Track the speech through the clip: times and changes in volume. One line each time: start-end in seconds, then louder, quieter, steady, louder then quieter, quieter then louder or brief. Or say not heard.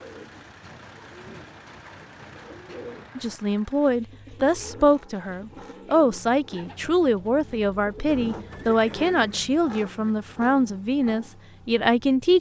3.1-12.3 steady.